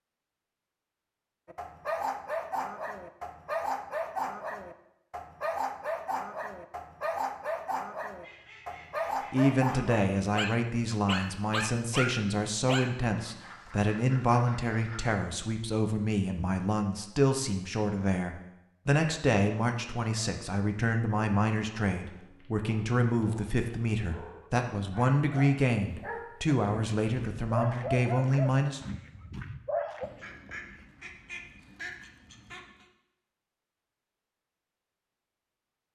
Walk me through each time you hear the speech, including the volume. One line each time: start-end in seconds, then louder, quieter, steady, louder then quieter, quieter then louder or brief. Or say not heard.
9.3-28.8 steady.